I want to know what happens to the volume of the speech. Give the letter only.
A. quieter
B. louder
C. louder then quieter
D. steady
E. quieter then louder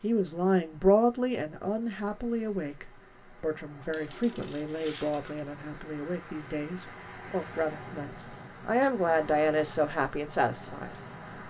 E.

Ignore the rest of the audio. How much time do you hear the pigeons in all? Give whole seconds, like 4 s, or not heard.
not heard.